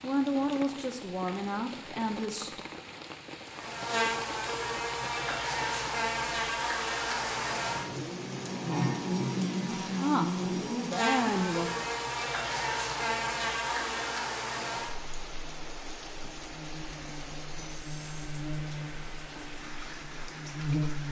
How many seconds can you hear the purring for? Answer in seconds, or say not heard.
not heard.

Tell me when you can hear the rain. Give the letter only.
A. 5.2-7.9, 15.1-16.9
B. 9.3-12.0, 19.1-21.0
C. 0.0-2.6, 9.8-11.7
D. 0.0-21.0
D.